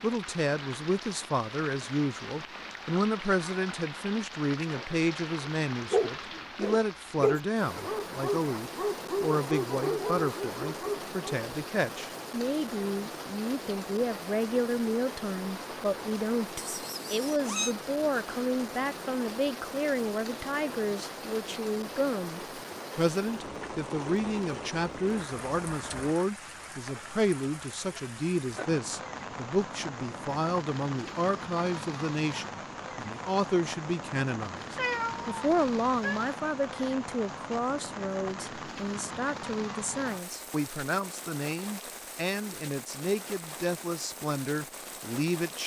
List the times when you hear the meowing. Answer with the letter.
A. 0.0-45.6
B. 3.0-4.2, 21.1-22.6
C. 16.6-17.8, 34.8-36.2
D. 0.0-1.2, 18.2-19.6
C.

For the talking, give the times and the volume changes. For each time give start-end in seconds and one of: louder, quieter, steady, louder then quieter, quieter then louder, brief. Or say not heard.
0.0-45.6 steady.